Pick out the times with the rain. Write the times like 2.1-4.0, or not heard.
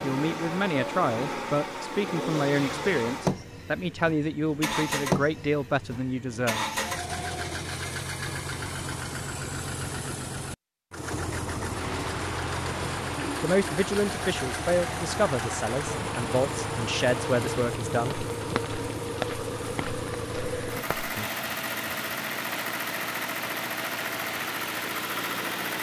11.6-25.7.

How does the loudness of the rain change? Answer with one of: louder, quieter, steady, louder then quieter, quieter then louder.
steady.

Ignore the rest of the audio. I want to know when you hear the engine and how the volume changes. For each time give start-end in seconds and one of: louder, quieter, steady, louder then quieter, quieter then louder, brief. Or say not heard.
0.0-25.7 steady.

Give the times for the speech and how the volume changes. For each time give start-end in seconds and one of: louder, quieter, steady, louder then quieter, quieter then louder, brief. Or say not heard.
0.0-6.7 steady
13.4-18.6 steady.